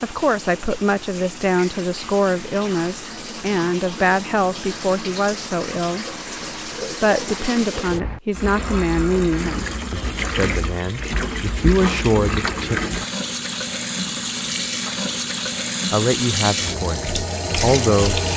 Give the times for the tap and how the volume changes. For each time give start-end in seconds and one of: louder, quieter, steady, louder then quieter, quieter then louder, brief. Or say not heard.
0.0-18.3 louder.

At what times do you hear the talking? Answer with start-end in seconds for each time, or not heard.
0.0-6.0, 6.9-12.8, 15.9-18.2.